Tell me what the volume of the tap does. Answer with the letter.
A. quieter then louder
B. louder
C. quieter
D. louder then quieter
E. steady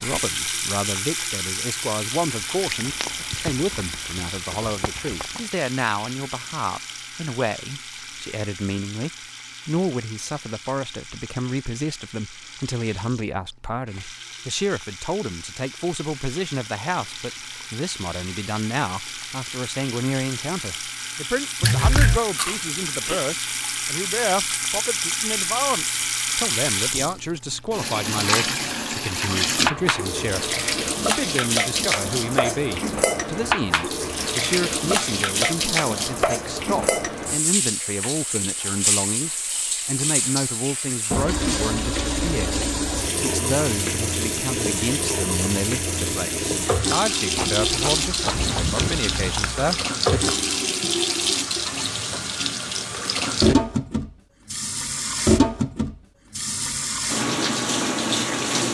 B.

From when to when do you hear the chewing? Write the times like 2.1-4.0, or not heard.
2.6-5.4, 21.6-23.2, 47.4-49.7.